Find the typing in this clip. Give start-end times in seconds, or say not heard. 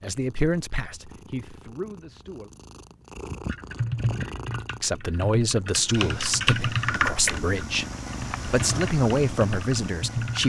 3.5-10.4.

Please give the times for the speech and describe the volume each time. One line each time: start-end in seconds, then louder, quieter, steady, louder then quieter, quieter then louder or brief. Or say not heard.
0.0-2.5 brief
4.8-10.4 quieter then louder.